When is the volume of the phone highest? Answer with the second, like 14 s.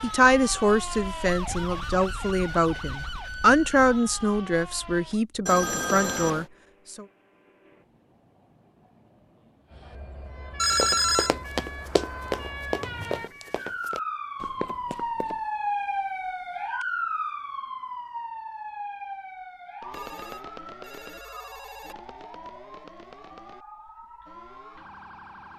11 s.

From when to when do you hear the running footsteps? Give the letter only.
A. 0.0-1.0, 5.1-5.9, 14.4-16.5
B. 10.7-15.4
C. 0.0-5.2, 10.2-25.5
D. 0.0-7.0
B.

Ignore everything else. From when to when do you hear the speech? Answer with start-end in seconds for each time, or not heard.
0.0-7.0.